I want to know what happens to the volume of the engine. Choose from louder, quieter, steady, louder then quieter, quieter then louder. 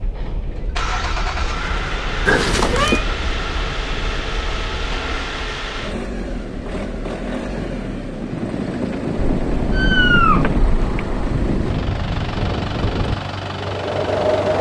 steady.